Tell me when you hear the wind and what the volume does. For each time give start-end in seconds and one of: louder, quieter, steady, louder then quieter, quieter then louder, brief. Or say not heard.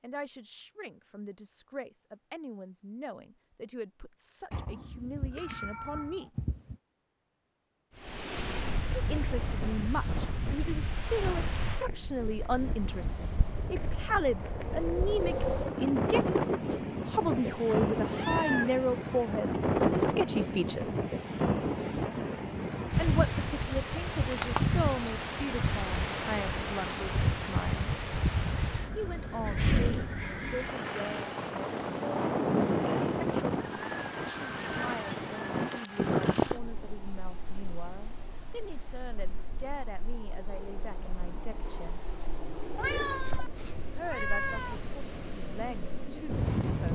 8.0-46.9 louder then quieter.